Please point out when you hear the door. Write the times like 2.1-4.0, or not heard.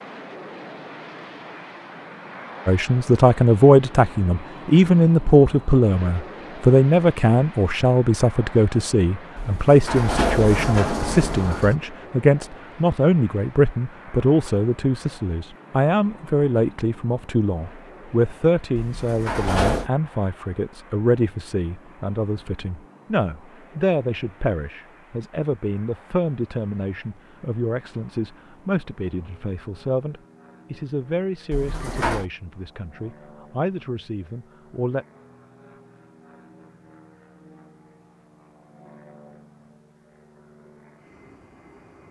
9.3-11.8, 18.8-19.9, 31.5-32.2.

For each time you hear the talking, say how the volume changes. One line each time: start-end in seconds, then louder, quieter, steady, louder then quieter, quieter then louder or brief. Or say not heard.
2.6-35.0 quieter.